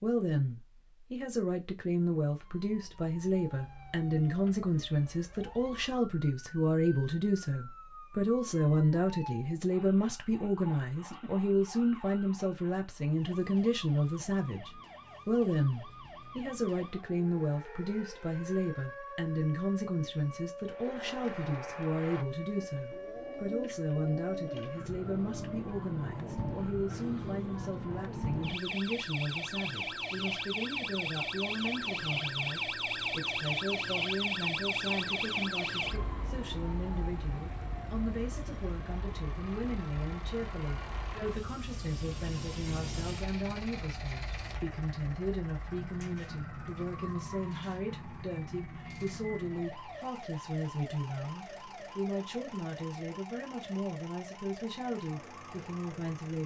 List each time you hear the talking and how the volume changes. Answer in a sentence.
You can hear the talking from 0.0 to 56.4 s, getting quieter.